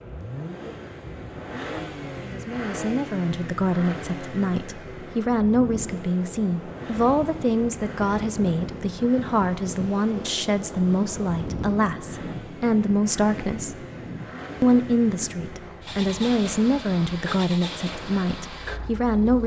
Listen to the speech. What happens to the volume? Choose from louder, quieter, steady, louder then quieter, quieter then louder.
steady.